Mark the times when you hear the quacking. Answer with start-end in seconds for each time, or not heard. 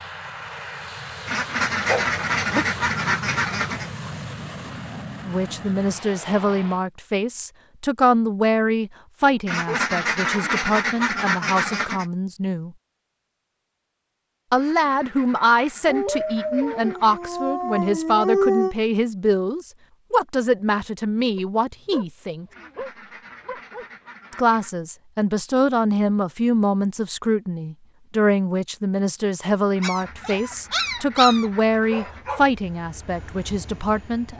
1.2-3.9, 9.4-12.1, 14.6-17.4, 22.5-24.8, 29.7-32.4.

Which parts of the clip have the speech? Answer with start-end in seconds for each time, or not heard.
5.2-12.7, 14.5-22.4, 24.3-34.3.